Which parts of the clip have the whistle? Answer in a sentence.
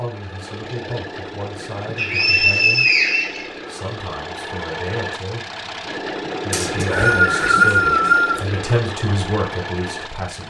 You can hear the whistle from 1.9 to 3.5 s and from 6.5 to 8.4 s.